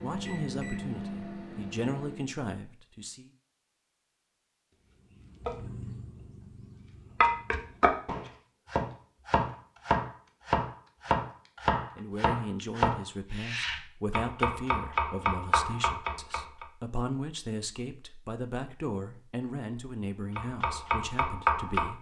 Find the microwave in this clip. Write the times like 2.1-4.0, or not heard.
0.0-2.3.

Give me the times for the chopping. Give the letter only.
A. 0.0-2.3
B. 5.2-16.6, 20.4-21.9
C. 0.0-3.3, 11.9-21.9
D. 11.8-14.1
B.